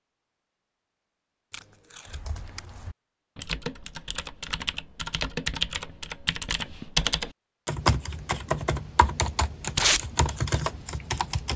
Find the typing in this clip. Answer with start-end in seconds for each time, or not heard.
2.0-11.5.